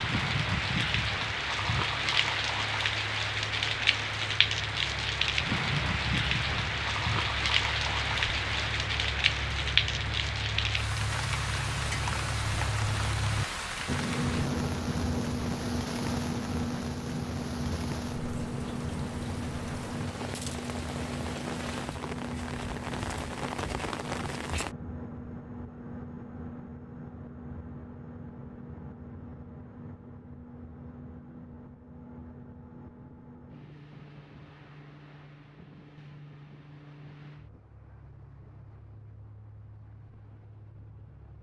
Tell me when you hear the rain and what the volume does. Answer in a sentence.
The rain can be heard from 0.0 to 24.8 s, getting quieter.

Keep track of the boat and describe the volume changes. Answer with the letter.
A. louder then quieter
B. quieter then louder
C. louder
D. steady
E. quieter
A.